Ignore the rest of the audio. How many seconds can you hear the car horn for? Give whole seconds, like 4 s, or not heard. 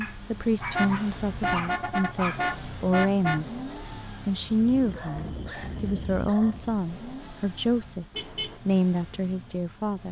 3 s.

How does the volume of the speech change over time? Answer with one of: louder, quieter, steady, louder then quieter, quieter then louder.
steady.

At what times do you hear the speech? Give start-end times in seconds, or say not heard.
0.0-3.6, 4.2-10.0.